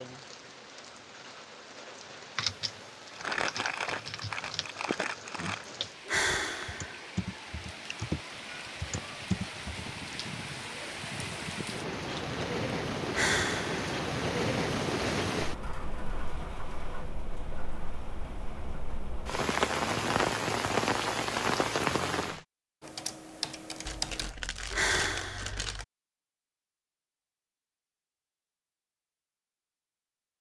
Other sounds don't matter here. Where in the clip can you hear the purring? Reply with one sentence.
You can't hear the purring here.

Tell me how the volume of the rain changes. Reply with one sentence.
The volume of the rain goes up.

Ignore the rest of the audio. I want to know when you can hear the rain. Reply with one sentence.
The rain can be heard from 0.0 to 22.4 s.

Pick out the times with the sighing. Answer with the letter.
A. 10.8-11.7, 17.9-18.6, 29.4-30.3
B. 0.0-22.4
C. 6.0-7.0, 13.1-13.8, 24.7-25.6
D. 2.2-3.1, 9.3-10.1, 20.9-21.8
C.